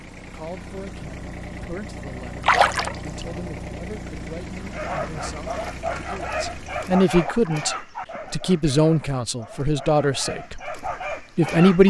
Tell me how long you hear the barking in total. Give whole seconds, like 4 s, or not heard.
7 s.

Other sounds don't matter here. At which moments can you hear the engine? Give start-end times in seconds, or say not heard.
0.0-7.0.